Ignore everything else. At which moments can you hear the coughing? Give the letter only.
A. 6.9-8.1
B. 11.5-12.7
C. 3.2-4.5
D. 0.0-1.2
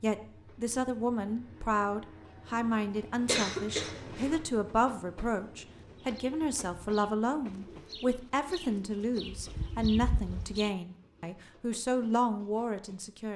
C.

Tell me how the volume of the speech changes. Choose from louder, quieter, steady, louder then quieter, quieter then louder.
steady.